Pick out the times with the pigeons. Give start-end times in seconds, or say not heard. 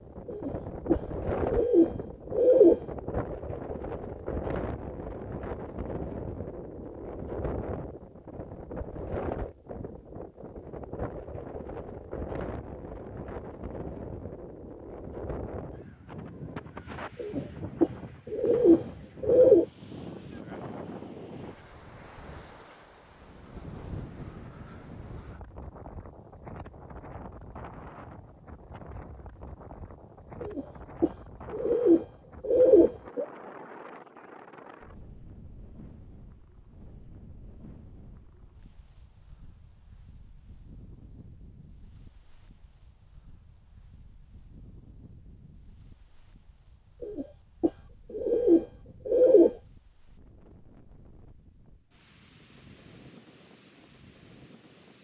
0.2-2.8, 17.1-19.6, 30.4-33.2, 47.0-49.5.